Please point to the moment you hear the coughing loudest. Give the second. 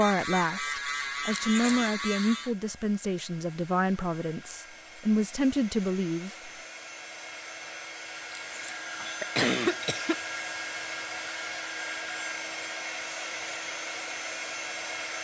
10 s.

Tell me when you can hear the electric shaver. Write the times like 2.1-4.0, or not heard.
0.0-2.5.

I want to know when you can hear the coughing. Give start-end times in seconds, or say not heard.
1.3-1.9, 8.3-10.2.